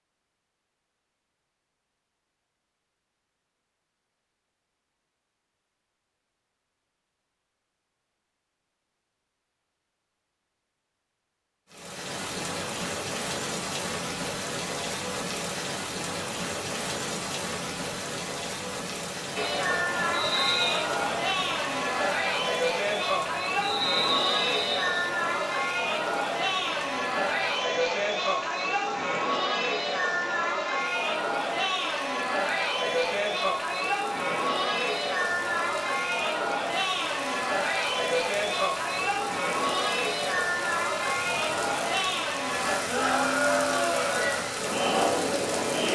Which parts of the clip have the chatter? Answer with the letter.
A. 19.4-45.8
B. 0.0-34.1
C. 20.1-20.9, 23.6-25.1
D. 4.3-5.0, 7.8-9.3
A.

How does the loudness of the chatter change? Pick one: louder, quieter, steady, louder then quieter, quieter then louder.
steady.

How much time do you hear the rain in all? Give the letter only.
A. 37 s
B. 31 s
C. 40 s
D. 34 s
D.